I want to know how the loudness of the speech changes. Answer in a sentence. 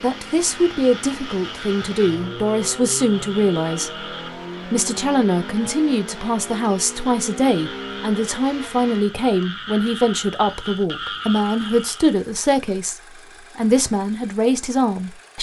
The loudness of the speech stays about the same.